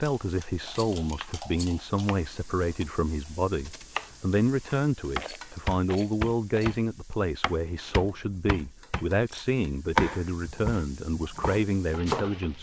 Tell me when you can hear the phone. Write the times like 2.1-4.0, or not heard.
not heard.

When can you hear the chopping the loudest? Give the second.
10 s.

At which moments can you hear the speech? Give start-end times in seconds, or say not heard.
0.0-12.5.